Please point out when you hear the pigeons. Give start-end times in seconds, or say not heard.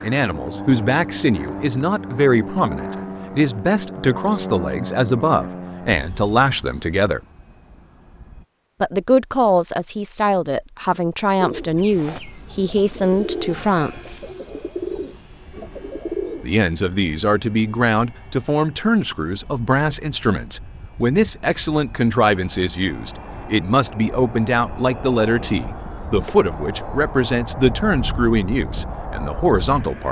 11.4-16.4.